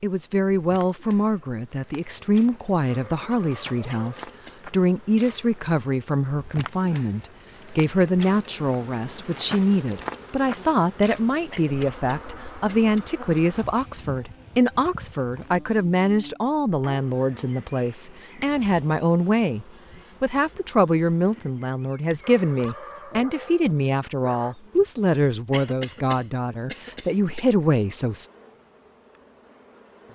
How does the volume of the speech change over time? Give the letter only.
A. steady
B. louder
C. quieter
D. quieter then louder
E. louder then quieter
A.